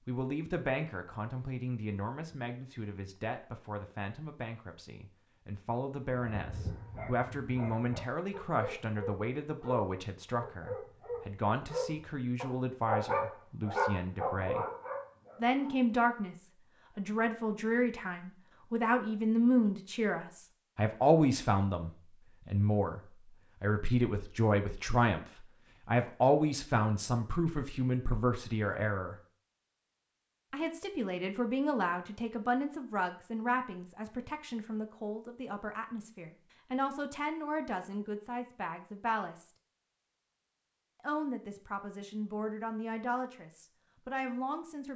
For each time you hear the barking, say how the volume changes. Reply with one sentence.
The barking can be heard from 6.0 to 15.8 s, getting louder.